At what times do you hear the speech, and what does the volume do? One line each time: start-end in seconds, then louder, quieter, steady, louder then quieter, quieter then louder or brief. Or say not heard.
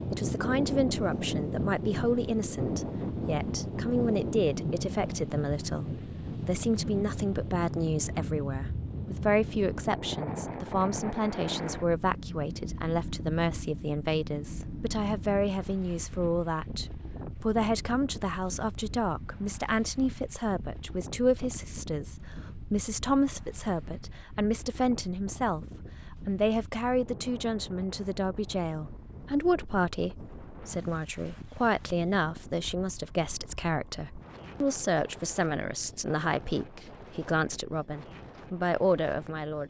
0.1-39.6 steady.